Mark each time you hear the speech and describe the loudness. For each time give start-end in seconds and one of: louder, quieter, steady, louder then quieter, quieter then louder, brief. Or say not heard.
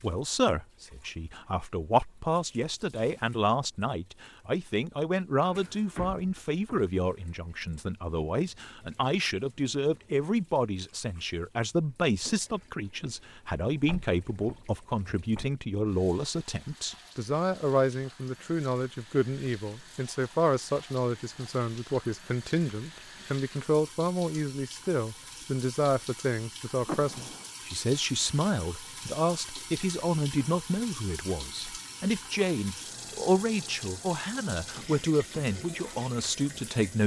0.0-37.0 steady.